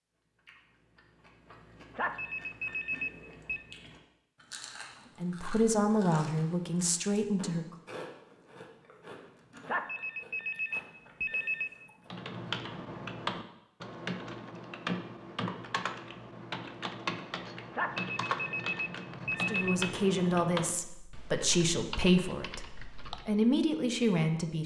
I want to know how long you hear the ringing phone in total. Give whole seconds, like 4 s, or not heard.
6 s.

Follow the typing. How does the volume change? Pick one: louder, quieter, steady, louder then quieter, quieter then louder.
quieter.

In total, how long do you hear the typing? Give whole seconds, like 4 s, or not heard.
11 s.